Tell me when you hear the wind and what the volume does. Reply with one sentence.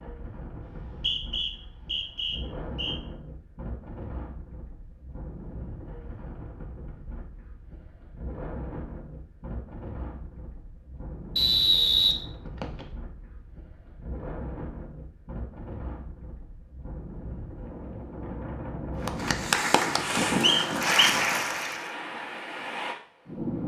You can hear the wind from 0.0 to 23.6 s, getting louder.